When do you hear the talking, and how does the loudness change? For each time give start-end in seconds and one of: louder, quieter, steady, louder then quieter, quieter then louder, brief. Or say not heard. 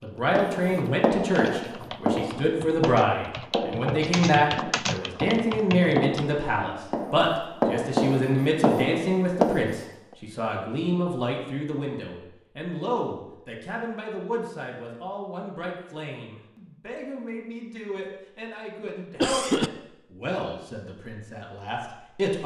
0.0-22.4 quieter.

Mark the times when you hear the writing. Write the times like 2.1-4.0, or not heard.
0.3-9.8.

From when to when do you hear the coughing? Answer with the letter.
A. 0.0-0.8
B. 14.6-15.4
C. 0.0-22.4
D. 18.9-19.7
D.